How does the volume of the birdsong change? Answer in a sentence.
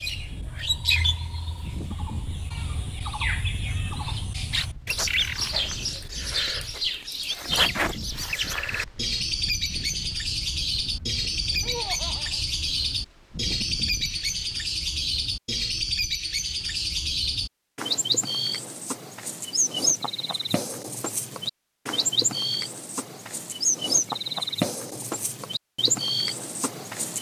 The loudness of the birdsong stays about the same.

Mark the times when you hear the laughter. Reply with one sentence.
The laughter can be heard from 11.6 to 12.4 s.